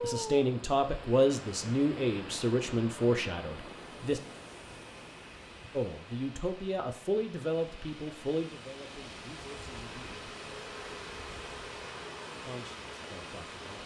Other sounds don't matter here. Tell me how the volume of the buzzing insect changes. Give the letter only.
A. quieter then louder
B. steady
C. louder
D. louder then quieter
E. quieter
B.